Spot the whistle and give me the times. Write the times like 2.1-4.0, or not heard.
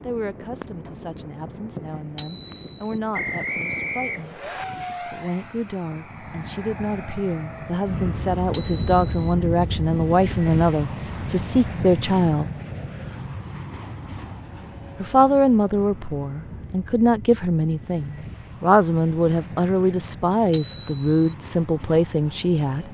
3.1-4.7.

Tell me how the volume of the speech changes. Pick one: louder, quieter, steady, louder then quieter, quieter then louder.
louder.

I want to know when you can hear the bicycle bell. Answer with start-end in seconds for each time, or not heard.
2.1-3.0, 8.5-9.3, 20.5-21.3.